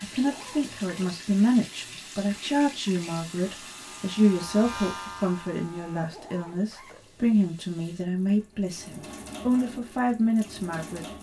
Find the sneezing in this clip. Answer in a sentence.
You can't hear the sneezing here.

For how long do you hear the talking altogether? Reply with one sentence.
You can hear the talking for 11 seconds altogether.